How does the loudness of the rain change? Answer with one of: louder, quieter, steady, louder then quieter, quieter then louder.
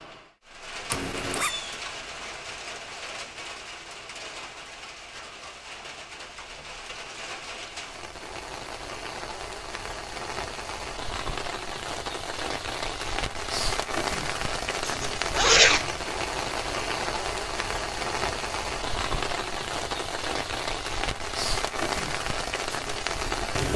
louder.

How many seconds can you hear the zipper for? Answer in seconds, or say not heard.
2 s.